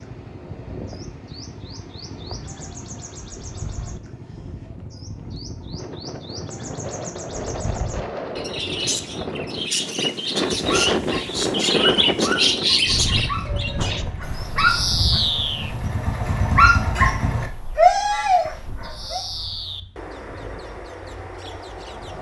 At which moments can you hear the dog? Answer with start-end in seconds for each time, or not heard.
10.5-19.2.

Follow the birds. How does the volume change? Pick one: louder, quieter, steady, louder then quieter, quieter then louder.
louder then quieter.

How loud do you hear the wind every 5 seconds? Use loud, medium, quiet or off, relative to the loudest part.
quiet, medium, loud, quiet, quiet.